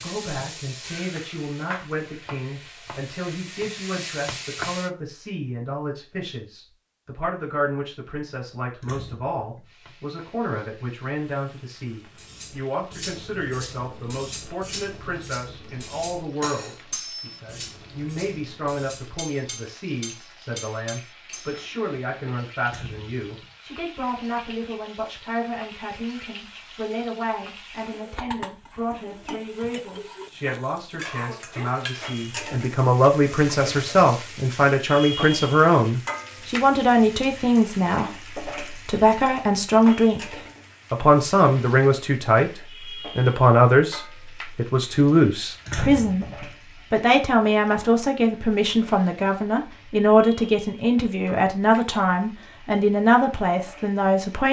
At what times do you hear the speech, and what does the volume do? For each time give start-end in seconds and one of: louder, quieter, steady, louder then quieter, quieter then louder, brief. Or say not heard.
0.0-54.4 louder.